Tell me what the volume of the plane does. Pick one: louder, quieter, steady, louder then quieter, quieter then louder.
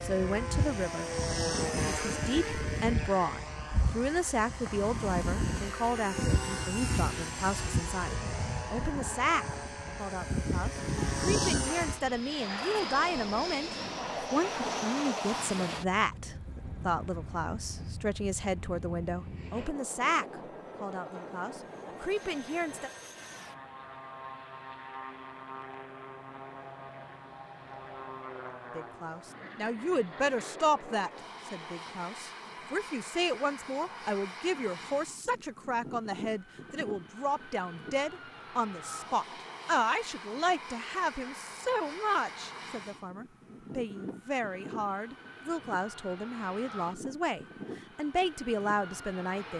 quieter.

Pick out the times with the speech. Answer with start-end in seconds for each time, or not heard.
0.0-1.1, 1.9-22.9, 28.8-49.5.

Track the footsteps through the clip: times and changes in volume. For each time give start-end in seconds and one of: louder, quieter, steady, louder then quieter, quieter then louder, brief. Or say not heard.
not heard.